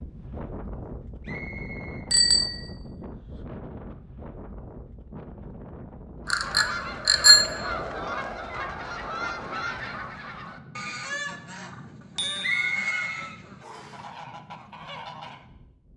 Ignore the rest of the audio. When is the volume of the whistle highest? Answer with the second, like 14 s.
13 s.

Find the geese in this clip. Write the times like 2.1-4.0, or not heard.
6.2-15.4.